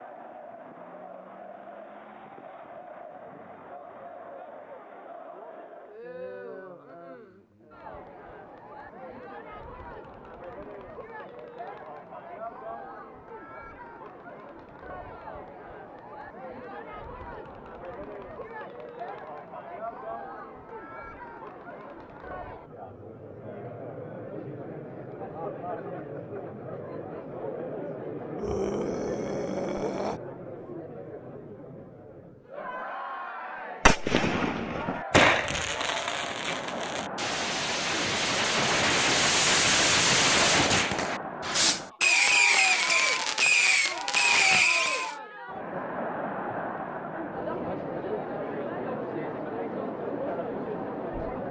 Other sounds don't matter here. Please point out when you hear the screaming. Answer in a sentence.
You can hear the screaming from 28.4 to 30.2 s.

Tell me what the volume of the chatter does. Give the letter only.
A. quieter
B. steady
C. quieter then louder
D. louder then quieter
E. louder
E.